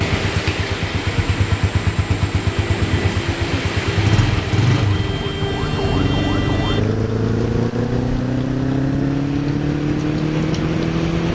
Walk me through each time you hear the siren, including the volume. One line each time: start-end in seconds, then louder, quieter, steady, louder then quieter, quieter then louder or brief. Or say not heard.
0.0-6.8 louder.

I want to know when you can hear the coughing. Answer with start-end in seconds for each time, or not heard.
not heard.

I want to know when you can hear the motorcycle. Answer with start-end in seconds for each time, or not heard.
0.0-11.3.